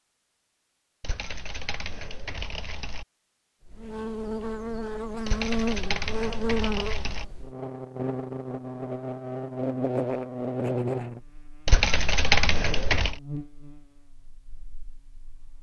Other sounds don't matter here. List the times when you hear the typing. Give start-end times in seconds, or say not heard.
1.0-3.0, 5.2-7.2, 11.7-13.2.